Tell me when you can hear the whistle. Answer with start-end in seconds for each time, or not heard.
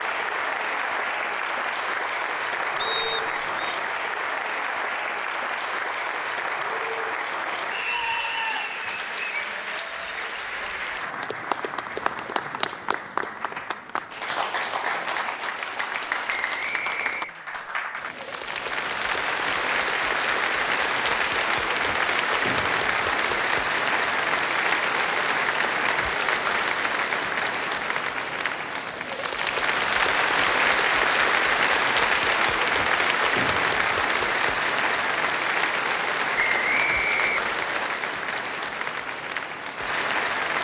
2.8-3.8, 16.2-17.4, 36.4-37.9.